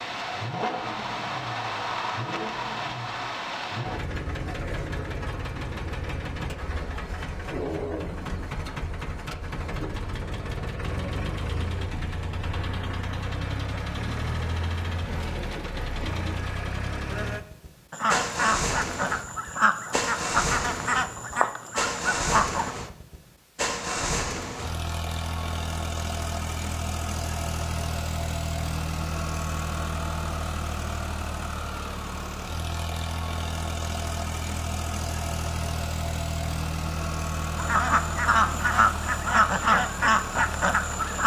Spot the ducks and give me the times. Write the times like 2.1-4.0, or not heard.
17.9-22.8, 37.5-41.2.